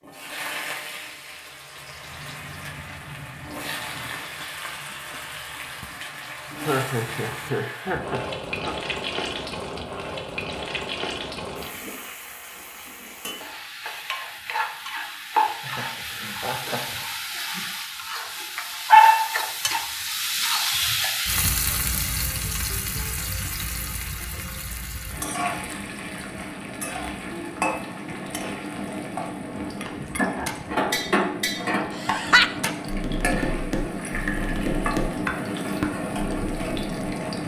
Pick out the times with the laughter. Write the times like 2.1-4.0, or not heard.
6.5-8.8, 15.6-17.1, 31.9-32.7.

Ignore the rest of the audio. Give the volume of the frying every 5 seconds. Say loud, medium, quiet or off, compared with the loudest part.
quiet, medium, medium, loud, medium, medium, medium, medium.